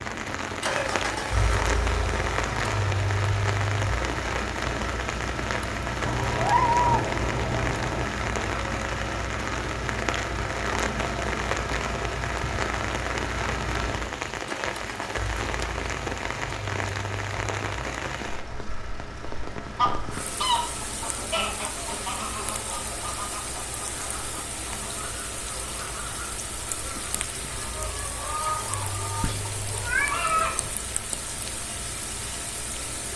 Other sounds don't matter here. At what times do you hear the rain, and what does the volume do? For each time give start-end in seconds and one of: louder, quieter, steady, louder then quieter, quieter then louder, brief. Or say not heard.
0.0-33.1 quieter.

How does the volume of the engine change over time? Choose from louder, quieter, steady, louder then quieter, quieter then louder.
quieter.